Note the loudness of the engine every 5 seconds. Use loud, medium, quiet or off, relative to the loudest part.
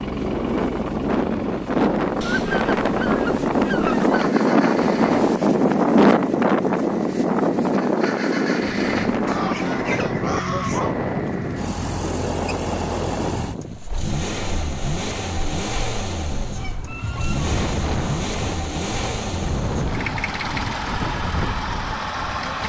medium, medium, loud, loud, loud.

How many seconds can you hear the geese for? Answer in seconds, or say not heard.
5 s.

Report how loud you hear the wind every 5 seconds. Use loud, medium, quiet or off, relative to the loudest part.
loud, loud, medium, medium, quiet.